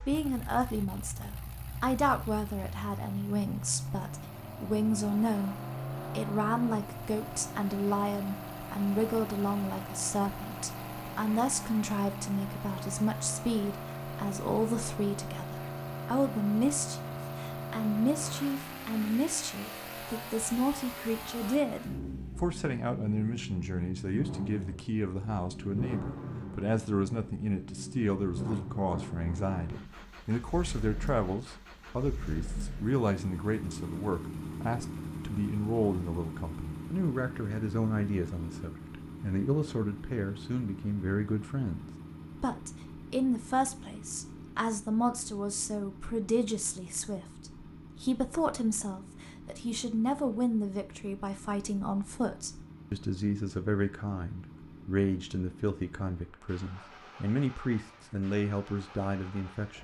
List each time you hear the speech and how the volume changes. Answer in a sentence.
The speech can be heard from 0.1 to 59.7 s, at a steady volume.